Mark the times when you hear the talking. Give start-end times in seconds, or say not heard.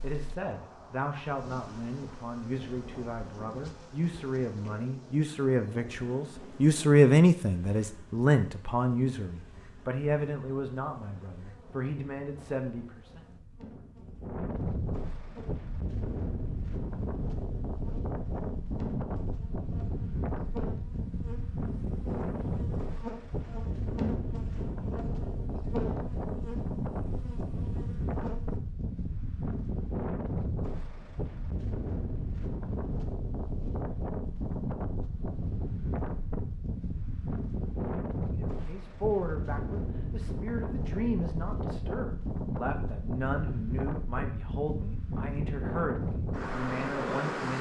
0.0-13.2, 38.4-47.5.